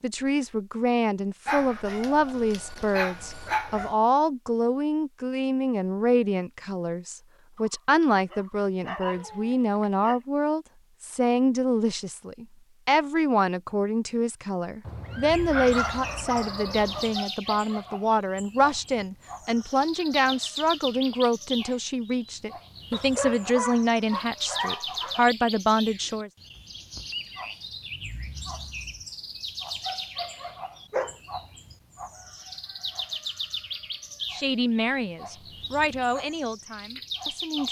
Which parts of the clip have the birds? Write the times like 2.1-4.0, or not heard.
15.3-37.6.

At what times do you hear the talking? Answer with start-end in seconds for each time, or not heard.
0.0-26.3, 34.3-37.6.